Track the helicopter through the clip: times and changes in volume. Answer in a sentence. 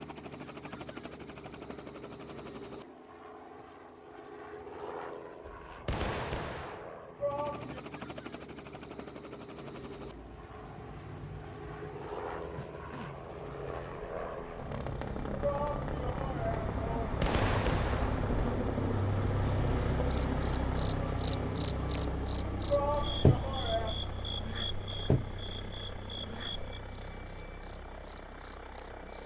The helicopter can be heard from 0.0 to 29.2 s, getting louder then quieter.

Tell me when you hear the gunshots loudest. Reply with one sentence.
The loudest moment of the gunshots is at 17 seconds.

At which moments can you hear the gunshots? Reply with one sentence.
The gunshots can be heard from 5.6 to 6.9 s and from 17.0 to 18.2 s.